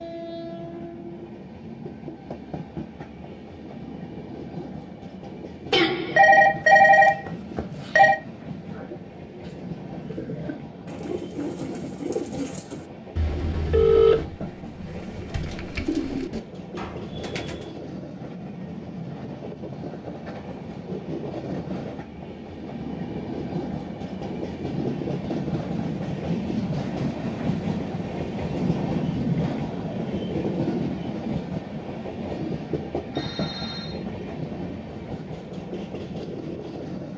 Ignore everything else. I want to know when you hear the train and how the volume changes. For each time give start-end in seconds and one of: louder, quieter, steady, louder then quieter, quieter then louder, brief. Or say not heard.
0.0-37.1 louder.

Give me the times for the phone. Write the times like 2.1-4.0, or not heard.
5.7-8.2, 13.2-14.2, 33.1-34.0.